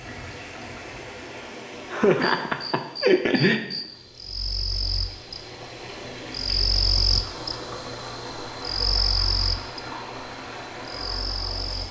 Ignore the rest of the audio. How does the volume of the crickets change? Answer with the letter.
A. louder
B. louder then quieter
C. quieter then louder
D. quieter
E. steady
B.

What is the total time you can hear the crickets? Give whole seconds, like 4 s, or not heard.
10 s.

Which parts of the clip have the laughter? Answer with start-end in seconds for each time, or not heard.
1.9-3.6.